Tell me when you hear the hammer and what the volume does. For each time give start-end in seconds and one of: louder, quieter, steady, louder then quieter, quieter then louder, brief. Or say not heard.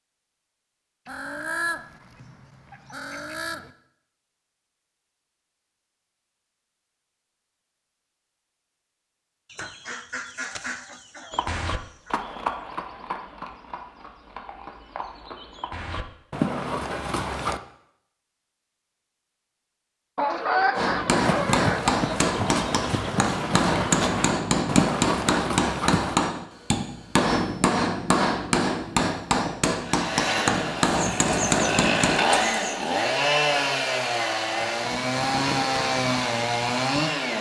20.8-32.2 steady.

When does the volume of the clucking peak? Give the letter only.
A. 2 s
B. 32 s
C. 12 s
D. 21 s
D.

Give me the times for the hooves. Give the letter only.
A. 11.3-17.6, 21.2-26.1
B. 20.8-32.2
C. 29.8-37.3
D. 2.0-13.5
A.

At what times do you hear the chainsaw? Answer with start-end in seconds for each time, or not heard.
29.8-37.3.